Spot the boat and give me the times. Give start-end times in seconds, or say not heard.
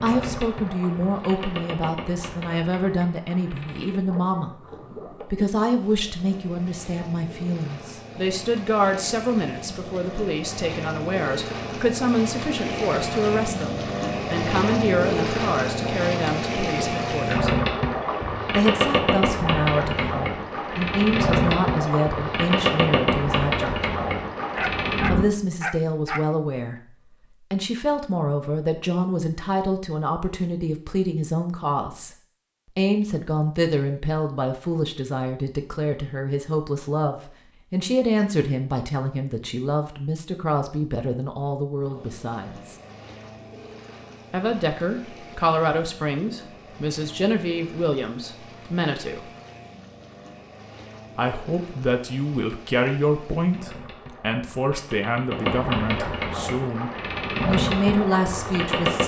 0.0-25.2, 41.8-59.0.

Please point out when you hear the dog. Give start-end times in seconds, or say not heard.
24.6-26.3.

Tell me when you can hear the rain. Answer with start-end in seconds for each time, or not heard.
not heard.